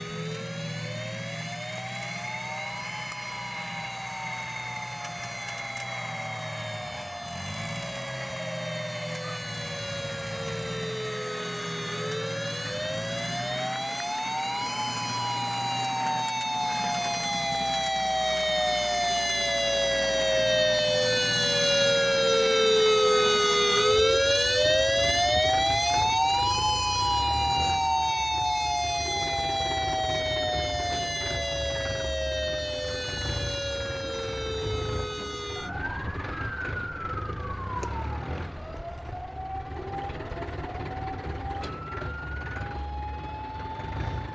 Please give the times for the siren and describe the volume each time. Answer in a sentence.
You can hear the siren from 0.0 to 44.2 s, getting louder then quieter.